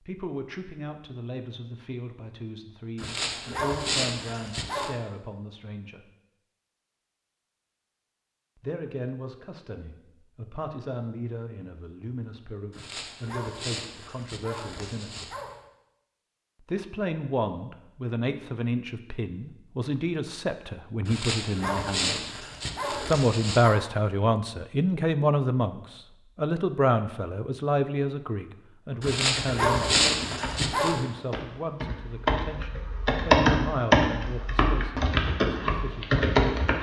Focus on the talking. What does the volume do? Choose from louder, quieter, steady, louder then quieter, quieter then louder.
louder then quieter.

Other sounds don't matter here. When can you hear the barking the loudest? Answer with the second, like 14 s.
30 s.